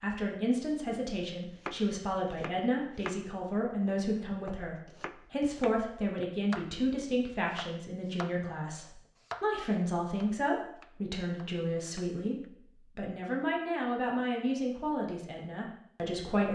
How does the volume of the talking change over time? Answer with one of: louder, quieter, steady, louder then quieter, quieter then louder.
steady.